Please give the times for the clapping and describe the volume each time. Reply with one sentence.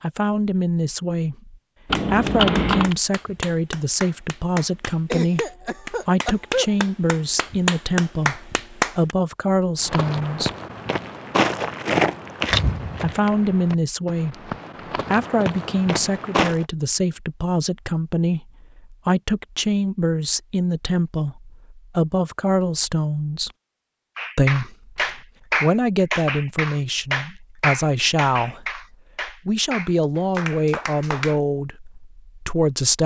You can hear the clapping from 1.9 to 9.2 s, getting louder; and from 24.1 to 31.4 s, getting quieter.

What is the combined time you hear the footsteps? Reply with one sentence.
You can hear the footsteps for 7 seconds altogether.